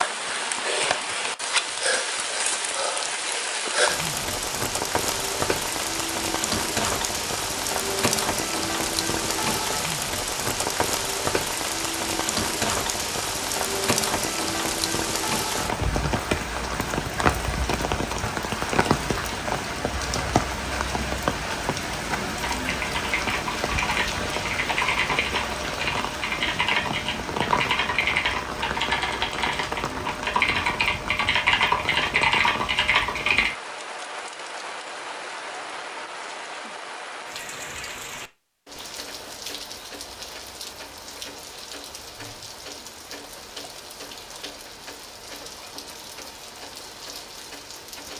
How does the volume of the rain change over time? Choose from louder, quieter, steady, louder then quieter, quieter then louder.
quieter.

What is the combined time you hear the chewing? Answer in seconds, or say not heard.
not heard.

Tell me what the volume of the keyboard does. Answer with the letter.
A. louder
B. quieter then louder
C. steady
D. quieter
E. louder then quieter
A.